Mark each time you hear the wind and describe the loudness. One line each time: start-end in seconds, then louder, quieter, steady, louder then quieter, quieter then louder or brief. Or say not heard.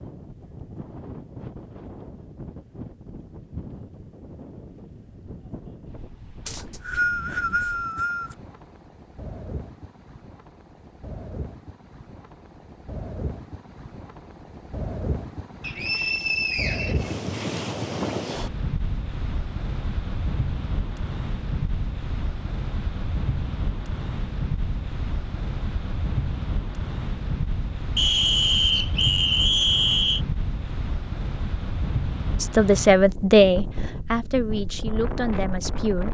0.0-36.0 louder.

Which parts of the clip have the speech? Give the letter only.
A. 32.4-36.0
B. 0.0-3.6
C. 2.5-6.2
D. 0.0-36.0
A.